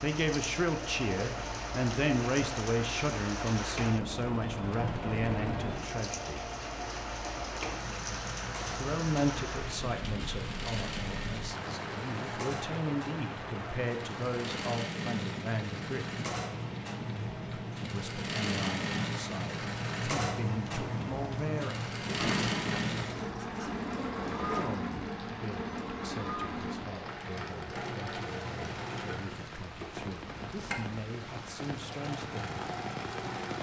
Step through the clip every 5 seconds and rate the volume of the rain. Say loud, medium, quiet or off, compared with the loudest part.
loud, loud, loud, loud, medium, medium, loud.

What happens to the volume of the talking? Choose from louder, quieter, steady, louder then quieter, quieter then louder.
quieter.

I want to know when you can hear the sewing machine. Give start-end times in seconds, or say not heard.
0.0-33.5.